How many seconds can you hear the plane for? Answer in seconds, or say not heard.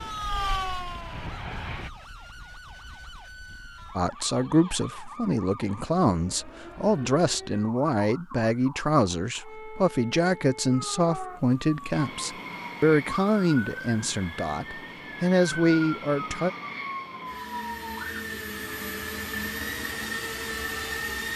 11 s.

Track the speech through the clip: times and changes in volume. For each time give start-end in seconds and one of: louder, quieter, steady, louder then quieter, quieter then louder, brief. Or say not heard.
4.0-16.5 steady.